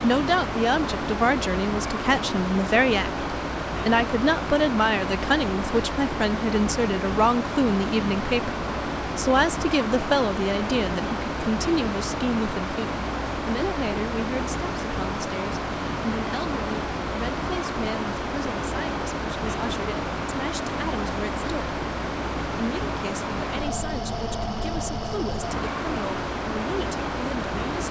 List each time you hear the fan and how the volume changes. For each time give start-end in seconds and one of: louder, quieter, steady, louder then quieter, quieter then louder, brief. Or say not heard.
0.0-27.8 steady.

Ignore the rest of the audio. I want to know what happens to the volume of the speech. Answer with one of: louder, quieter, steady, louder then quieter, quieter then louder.
quieter.